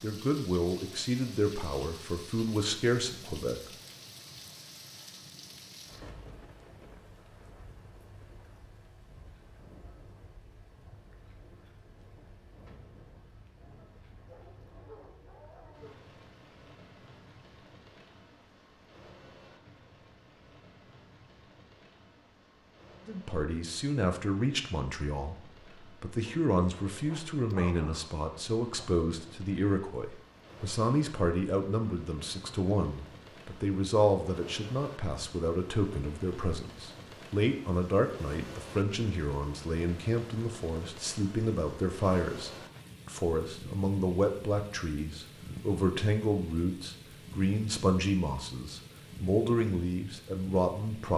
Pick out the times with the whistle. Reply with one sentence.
You can't hear the whistle here.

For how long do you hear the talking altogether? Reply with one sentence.
The talking can be heard for 32 seconds in total.